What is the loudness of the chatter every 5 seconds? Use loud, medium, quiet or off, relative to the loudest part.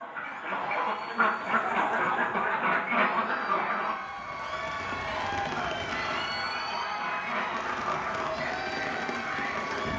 medium, loud.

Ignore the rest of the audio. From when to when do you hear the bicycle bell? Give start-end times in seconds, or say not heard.
not heard.